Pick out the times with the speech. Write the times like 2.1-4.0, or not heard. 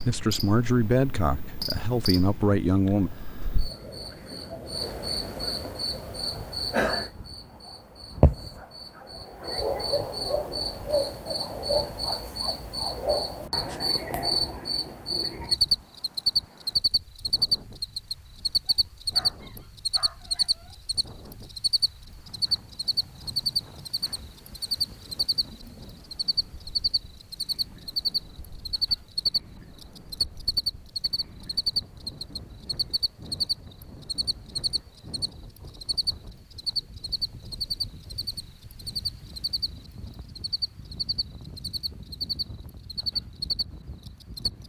0.0-3.1.